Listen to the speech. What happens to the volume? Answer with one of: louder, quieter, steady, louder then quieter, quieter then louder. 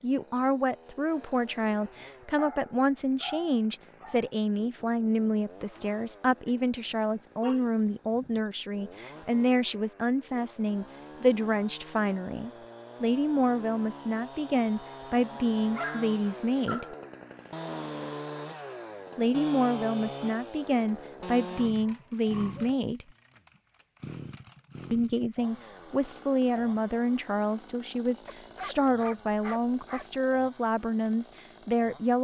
steady.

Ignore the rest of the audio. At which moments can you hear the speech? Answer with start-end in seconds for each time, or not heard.
0.0-16.9, 19.1-23.1, 24.9-32.2.